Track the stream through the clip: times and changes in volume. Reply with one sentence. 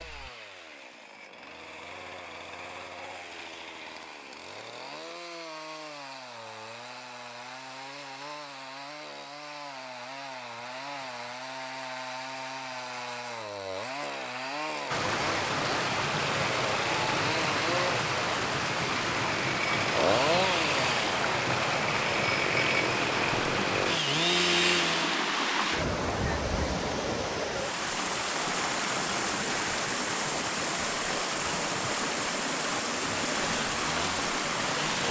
You can hear the stream from 14.8 to 35.0 s, at a steady volume.